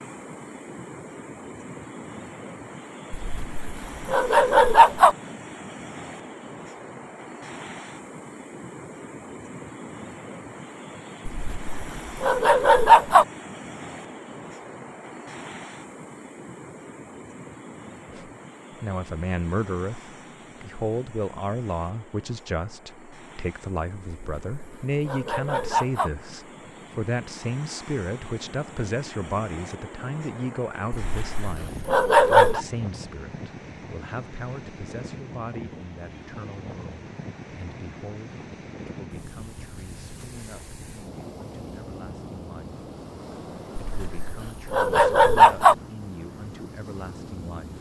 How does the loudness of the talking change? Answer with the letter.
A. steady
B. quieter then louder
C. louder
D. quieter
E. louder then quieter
D.